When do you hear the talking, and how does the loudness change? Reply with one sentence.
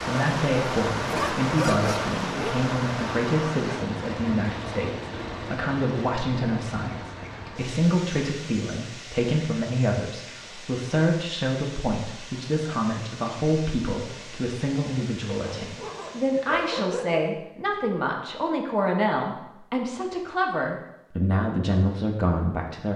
The talking can be heard from 0.0 to 22.9 s, at a steady volume.